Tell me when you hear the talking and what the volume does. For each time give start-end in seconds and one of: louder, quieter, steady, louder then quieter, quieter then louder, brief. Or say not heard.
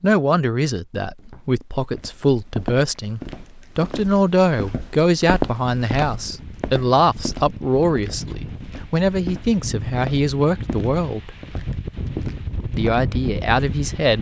0.0-11.3 steady
12.8-14.1 brief.